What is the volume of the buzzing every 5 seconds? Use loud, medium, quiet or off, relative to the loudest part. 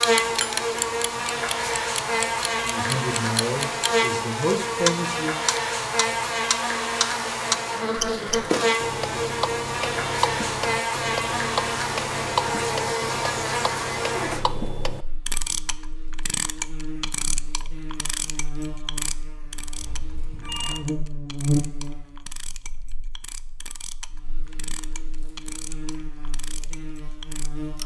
loud, loud, loud, quiet, medium, quiet.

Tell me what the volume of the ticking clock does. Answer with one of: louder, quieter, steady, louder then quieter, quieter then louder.
quieter.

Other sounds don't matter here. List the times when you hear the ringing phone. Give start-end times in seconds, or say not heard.
19.6-20.8.